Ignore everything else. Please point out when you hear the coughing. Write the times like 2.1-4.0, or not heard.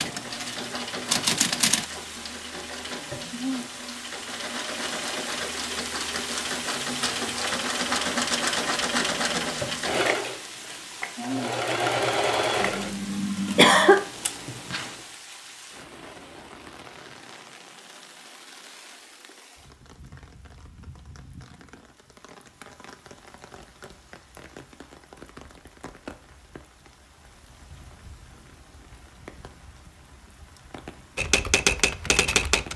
12.6-14.0.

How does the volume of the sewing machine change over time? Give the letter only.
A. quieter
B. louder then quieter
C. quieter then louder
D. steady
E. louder
E.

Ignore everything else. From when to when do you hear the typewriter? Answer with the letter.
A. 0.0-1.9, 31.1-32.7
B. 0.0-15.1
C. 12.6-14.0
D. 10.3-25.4
A.